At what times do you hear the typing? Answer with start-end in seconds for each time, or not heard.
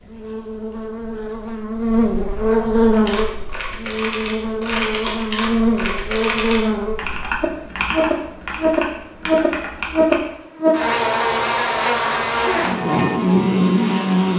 2.9-10.2.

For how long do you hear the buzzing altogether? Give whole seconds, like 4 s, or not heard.
14 s.